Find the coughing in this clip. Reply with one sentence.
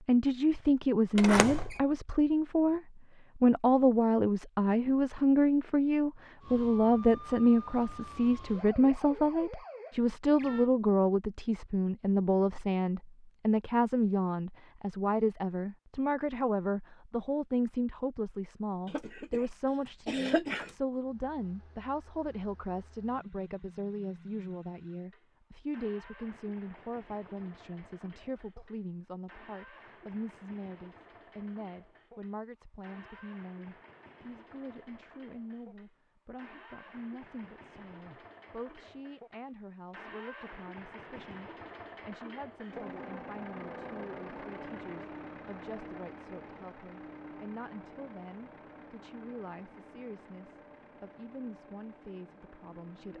You can hear the coughing from 18.9 to 20.8 s.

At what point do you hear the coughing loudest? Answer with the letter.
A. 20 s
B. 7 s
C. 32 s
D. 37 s
A.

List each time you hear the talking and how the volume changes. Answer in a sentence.
You can hear the talking from 0.1 to 53.1 s, getting quieter.